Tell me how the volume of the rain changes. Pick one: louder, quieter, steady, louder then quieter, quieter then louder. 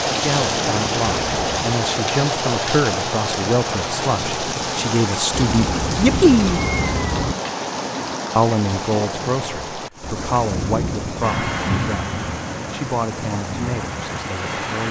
quieter.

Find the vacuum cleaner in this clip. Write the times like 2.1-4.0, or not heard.
11.2-14.8.